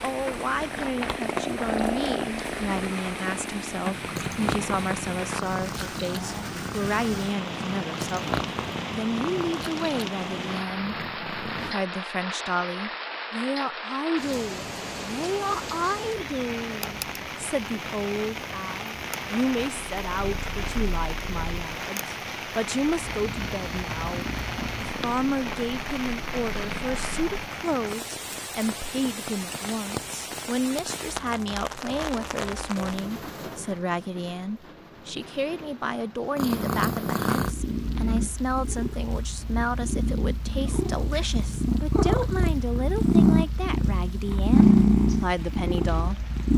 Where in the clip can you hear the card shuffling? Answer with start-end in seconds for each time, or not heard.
not heard.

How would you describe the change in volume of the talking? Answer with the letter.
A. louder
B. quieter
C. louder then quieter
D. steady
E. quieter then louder
D.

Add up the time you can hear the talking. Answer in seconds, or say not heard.
46 s.